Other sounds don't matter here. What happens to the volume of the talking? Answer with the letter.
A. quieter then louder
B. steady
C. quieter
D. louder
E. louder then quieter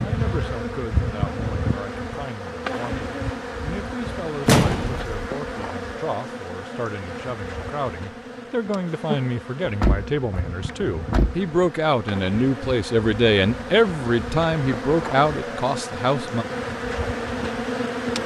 D.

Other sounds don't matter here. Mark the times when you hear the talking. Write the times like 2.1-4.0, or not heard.
0.0-16.4.